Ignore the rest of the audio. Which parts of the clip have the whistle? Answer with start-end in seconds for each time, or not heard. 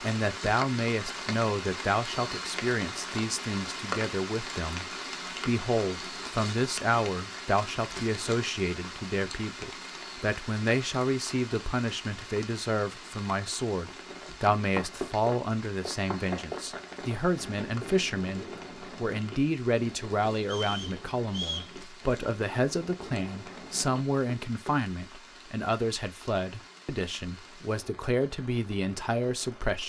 20.4-21.8.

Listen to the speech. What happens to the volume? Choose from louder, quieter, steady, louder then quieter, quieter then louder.
steady.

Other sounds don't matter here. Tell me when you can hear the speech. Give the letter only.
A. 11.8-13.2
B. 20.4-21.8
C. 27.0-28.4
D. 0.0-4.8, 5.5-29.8
D.